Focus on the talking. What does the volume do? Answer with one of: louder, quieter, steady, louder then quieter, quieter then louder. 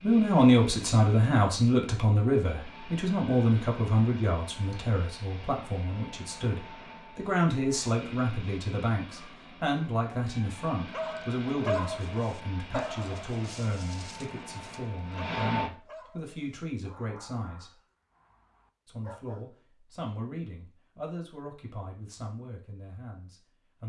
quieter.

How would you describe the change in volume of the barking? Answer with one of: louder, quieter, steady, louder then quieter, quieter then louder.
quieter.